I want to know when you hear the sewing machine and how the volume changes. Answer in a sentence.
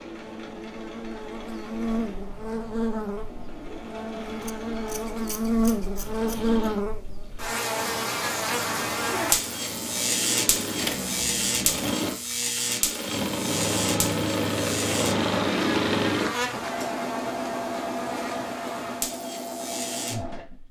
The sewing machine can be heard from 0.0 to 20.6 s, getting louder then quieter.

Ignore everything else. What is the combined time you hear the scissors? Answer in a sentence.
The scissors can be heard for 4 seconds in total.